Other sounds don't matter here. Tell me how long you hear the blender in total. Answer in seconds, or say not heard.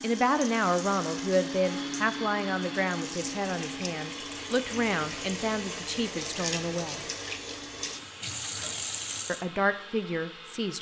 11 s.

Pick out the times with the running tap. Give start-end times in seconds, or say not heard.
0.0-9.4.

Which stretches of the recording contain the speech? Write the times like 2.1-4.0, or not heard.
0.0-7.0, 9.2-10.7.